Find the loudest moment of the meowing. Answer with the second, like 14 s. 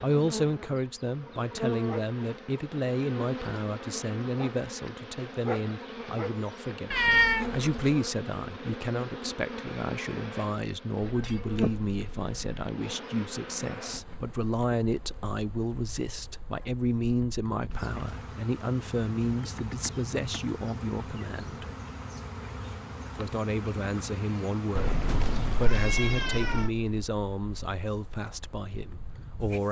7 s.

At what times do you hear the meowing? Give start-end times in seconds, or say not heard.
6.9-7.9, 11.0-12.7, 24.8-26.7.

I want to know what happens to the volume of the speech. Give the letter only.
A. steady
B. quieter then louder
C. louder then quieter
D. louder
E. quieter
A.